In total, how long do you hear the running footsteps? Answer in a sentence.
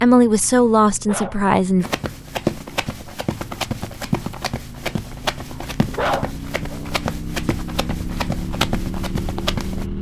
The running footsteps can be heard for 8 seconds in total.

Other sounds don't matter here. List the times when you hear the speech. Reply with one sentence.
You can hear the speech from 0.0 to 1.9 s.